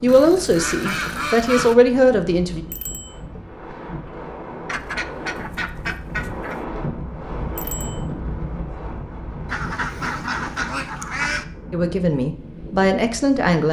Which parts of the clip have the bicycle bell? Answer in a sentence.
You can hear the bicycle bell from 2.7 to 3.2 s and from 7.5 to 8.1 s.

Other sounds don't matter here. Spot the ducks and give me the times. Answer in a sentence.
You can hear the ducks from 0.1 to 1.8 s, from 4.7 to 6.5 s and from 9.4 to 11.4 s.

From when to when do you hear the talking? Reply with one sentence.
The talking can be heard from 0.0 to 2.6 s and from 11.7 to 13.6 s.